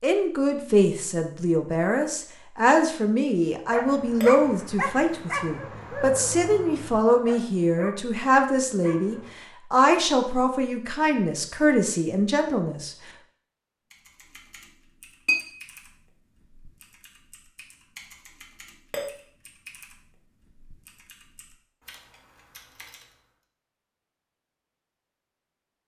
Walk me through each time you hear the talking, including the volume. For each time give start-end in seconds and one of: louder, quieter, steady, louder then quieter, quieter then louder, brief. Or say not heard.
0.0-12.9 steady.